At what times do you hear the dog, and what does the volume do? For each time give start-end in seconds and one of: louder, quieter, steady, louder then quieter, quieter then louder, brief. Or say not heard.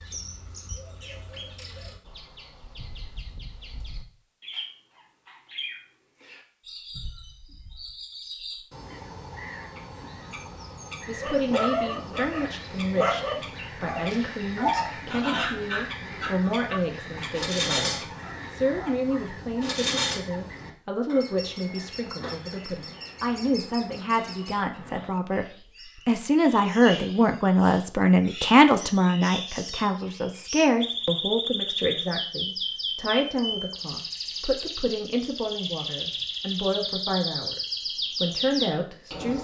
11.2-20.2 quieter.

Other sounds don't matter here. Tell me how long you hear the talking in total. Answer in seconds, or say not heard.
28 s.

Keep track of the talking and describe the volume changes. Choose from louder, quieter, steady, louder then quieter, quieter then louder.
louder then quieter.